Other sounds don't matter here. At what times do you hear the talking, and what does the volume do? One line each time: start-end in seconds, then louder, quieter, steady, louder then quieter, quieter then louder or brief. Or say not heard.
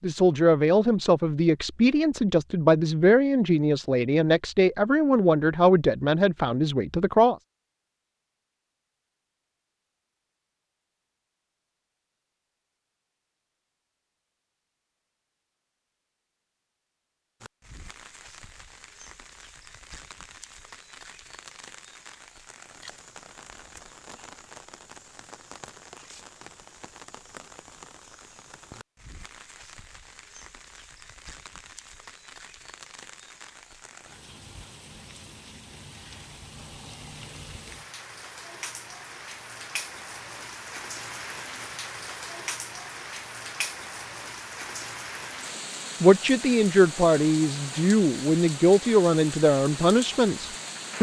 0.0-7.3 steady
46.0-50.9 steady.